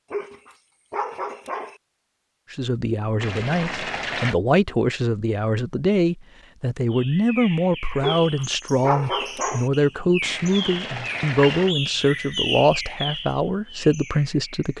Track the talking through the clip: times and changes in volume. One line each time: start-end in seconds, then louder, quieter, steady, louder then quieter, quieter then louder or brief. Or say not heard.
2.5-14.7 steady.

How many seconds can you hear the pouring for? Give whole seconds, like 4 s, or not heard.
3 s.